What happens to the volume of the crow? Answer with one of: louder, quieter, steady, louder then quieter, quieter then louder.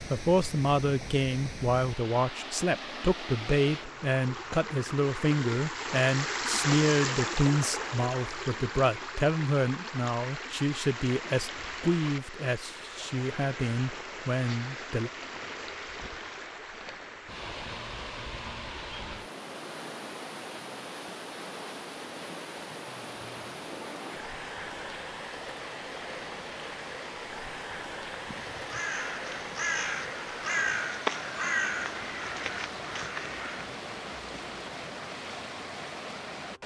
louder then quieter.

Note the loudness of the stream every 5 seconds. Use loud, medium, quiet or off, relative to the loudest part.
medium, loud, medium, medium, medium, medium, medium, medium.